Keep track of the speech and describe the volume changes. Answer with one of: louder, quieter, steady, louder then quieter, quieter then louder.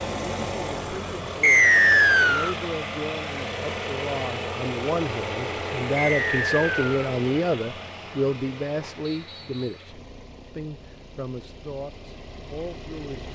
louder then quieter.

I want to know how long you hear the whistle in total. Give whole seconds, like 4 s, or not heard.
3 s.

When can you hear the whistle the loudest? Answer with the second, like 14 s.
2 s.